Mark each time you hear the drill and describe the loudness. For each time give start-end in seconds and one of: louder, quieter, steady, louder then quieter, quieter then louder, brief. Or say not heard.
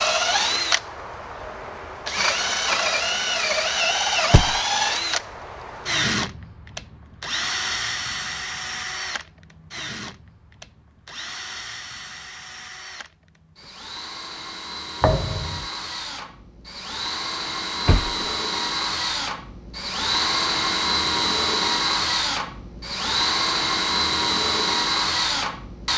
0.0-25.9 quieter then louder.